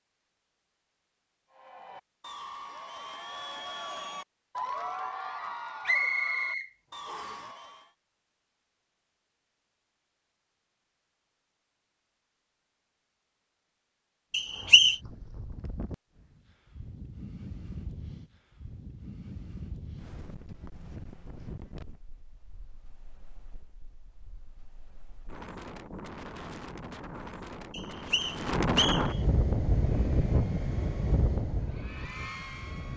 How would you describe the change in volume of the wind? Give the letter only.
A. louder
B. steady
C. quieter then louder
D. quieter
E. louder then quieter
C.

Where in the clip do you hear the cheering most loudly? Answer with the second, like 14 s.
5 s.